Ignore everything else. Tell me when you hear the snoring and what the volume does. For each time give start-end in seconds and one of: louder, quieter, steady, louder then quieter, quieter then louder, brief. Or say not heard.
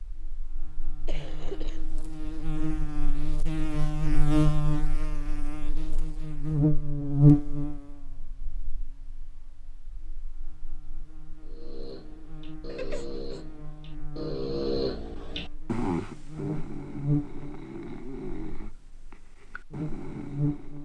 11.4-20.8 louder then quieter.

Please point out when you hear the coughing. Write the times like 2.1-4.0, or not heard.
1.1-1.8, 12.7-13.4.